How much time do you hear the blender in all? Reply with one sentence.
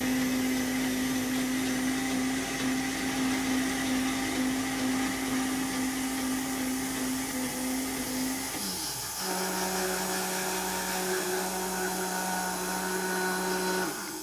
You can hear the blender for 14 seconds altogether.